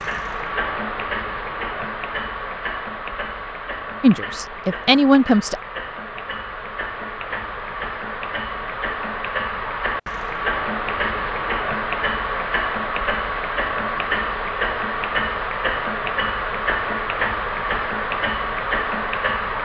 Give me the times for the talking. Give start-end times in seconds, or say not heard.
4.0-5.6.